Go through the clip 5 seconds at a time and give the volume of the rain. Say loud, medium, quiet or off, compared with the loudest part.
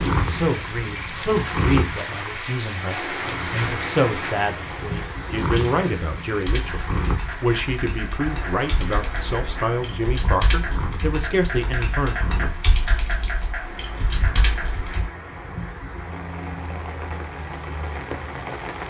loud, medium, medium, medium.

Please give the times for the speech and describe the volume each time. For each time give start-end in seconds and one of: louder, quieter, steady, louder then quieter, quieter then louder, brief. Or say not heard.
0.1-12.2 steady.